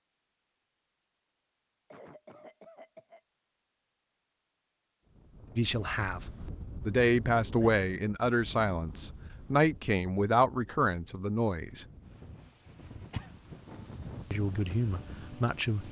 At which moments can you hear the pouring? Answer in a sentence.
You can't hear the pouring here.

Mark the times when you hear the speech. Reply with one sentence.
The speech can be heard from 5.5 to 11.8 s and from 14.3 to 15.8 s.